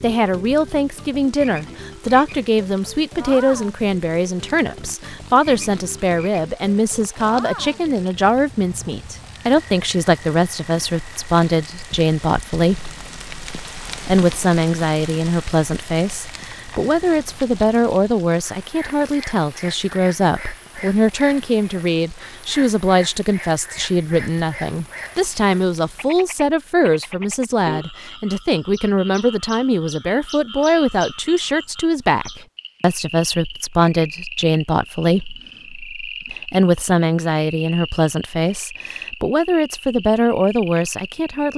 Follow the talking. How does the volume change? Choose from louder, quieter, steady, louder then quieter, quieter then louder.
steady.